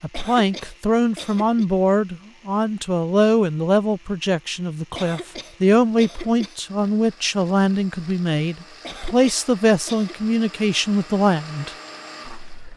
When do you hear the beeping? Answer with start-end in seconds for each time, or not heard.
not heard.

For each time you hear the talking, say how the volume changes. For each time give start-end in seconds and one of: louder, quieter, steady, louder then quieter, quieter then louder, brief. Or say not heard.
0.0-12.7 steady.